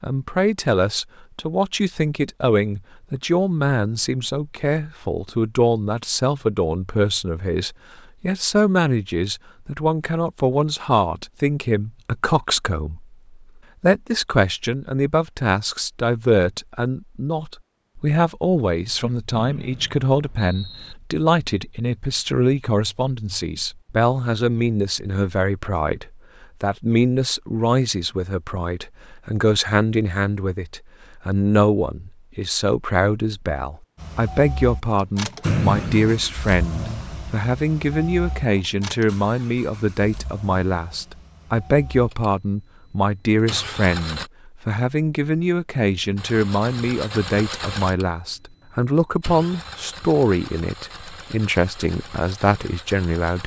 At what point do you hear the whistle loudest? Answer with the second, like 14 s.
36 s.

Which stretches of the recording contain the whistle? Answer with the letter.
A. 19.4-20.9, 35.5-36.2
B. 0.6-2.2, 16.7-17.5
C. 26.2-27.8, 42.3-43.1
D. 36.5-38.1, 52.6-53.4
A.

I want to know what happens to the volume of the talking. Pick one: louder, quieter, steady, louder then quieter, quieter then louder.
steady.